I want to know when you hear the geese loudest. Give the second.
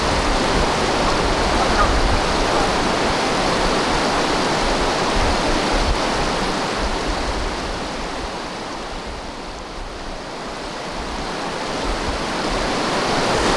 2 s.